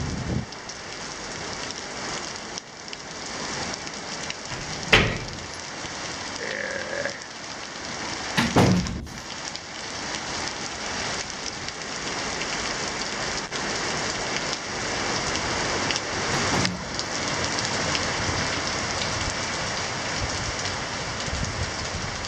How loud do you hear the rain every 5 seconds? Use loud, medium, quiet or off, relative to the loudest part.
medium, medium, loud, loud, loud.